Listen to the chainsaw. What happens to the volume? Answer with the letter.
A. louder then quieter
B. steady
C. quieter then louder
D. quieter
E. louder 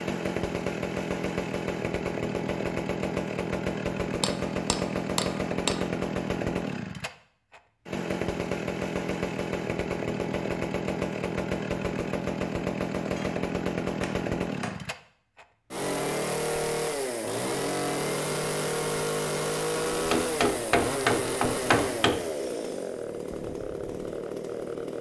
B.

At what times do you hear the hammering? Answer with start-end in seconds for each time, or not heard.
4.2-5.8, 13.2-14.8, 20.1-22.2.